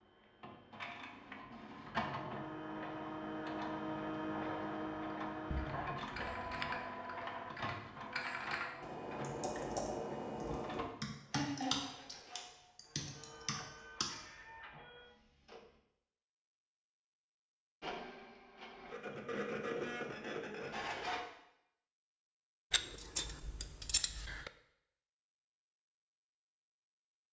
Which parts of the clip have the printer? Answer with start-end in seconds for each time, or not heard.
0.0-15.8, 17.8-21.2.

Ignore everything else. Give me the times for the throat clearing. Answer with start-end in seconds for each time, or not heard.
11.3-11.8.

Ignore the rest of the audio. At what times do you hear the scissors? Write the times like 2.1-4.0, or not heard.
5.5-6.8, 22.7-24.5.